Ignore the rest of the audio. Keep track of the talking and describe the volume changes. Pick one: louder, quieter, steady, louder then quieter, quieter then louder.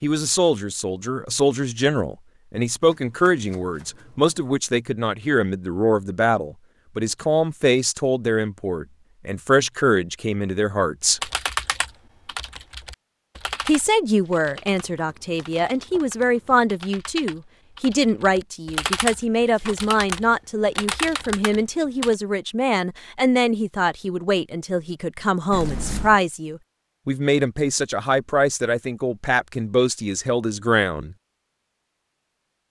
steady.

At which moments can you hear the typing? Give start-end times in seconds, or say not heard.
11.2-22.1.